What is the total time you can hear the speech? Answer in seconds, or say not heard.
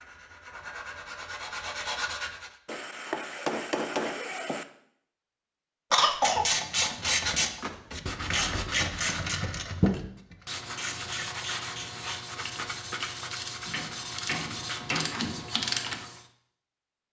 not heard.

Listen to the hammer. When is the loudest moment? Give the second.
4 s.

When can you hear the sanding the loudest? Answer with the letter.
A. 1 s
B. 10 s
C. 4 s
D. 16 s
B.